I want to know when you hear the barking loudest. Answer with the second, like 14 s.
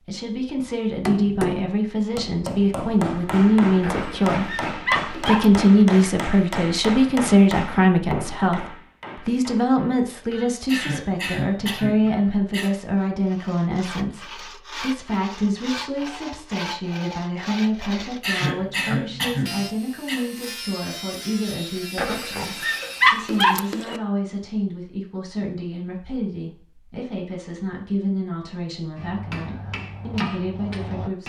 23 s.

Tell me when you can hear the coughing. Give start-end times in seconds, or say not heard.
10.7-12.7, 18.2-20.2.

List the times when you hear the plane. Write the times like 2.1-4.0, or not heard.
not heard.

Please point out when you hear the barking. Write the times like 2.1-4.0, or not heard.
3.8-5.6, 21.9-24.0.